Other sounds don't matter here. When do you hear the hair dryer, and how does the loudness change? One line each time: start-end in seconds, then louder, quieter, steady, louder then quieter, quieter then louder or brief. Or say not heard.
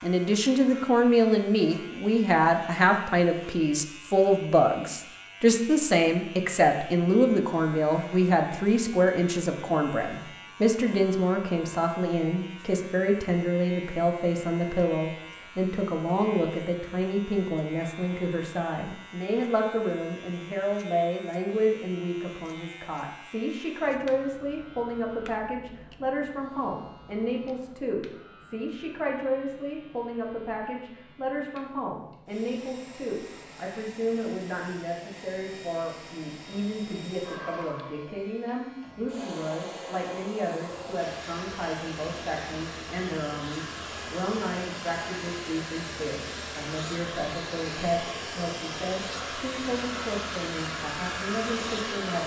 32.2-52.2 louder.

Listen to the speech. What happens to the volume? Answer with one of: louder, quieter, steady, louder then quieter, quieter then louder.
quieter.